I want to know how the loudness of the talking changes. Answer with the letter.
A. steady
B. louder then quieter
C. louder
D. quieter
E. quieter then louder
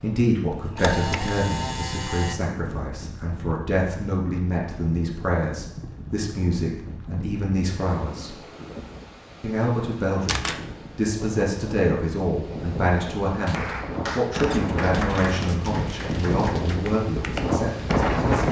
A.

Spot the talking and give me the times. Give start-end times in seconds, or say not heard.
0.0-8.3, 9.4-18.4.